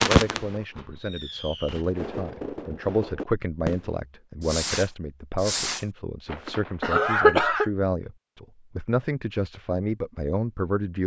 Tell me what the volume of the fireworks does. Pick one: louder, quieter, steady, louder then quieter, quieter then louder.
louder.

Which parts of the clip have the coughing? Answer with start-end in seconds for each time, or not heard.
6.8-7.7.